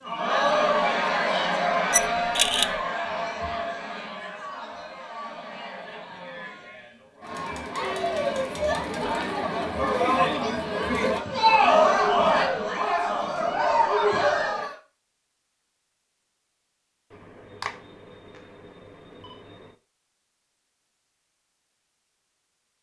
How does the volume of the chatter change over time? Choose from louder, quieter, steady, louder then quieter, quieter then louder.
quieter then louder.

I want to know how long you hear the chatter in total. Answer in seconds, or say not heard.
15 s.